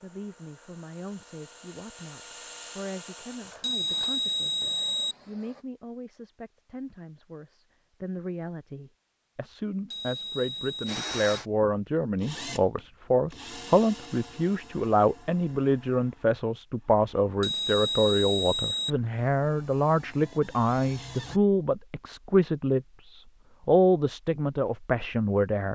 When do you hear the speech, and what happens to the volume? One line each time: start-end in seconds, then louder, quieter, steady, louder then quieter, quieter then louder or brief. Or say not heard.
0.0-25.7 louder.